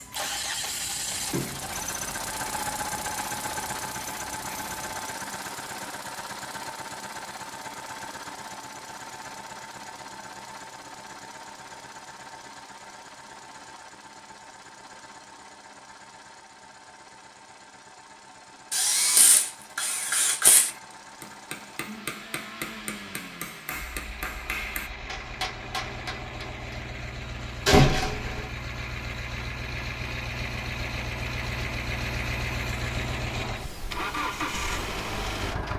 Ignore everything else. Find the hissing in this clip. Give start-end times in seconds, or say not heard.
0.0-5.0.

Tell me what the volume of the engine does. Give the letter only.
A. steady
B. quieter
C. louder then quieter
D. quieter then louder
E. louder
D.